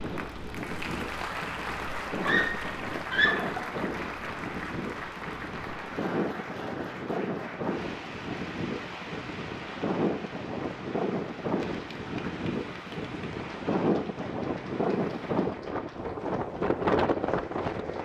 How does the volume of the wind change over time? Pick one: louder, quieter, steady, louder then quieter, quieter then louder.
louder.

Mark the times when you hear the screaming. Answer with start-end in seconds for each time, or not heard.
2.2-3.6.